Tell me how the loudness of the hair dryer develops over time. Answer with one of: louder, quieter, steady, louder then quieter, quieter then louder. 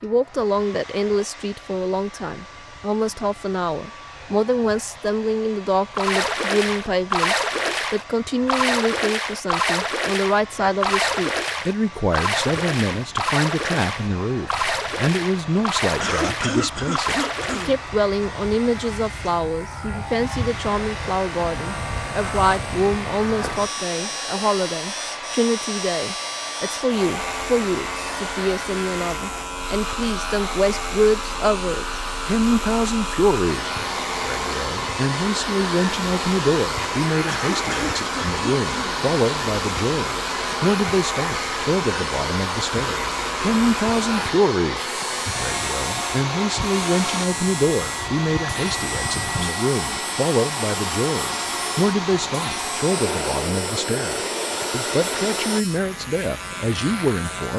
louder.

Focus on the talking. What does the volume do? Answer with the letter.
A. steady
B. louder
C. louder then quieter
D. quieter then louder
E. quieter
A.